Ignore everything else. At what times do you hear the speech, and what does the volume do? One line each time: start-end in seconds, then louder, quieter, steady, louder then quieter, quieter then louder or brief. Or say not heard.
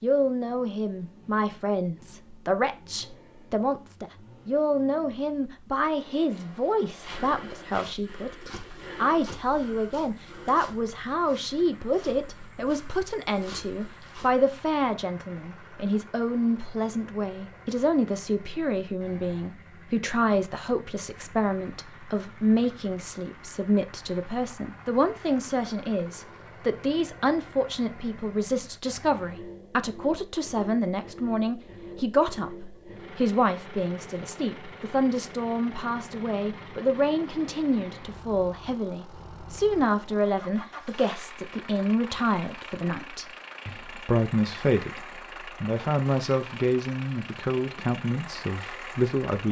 0.0-49.4 steady.